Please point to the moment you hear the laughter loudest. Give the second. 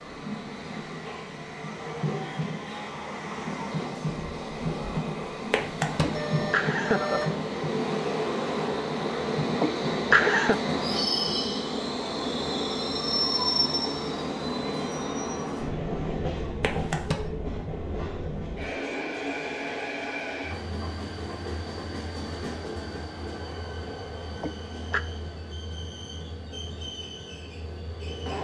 10 s.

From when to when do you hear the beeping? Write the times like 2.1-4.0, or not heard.
5.5-7.3, 16.6-17.3.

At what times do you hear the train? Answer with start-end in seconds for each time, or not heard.
0.0-28.3.